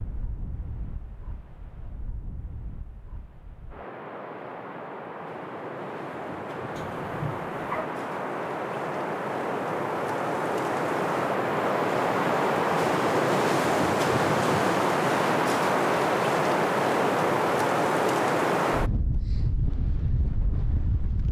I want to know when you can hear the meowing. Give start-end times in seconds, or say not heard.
6.7-7.8.